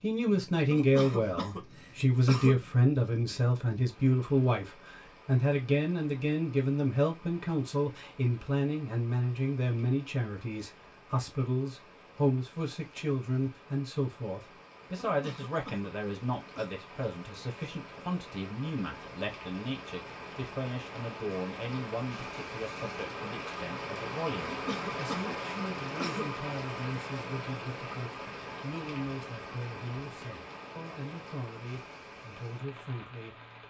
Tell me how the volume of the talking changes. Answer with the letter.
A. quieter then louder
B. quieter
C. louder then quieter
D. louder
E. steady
B.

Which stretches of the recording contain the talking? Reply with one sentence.
The talking can be heard from 0.0 to 33.6 s.